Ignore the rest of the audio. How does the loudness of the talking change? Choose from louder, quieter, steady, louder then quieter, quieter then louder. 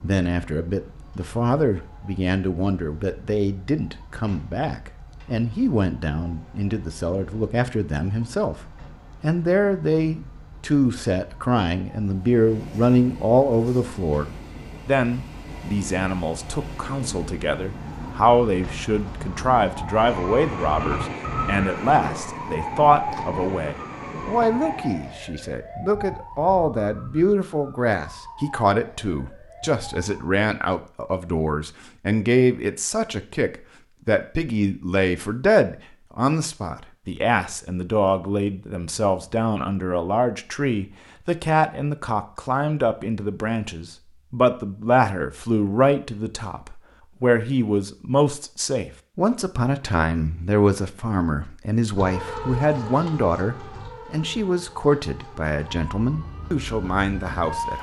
steady.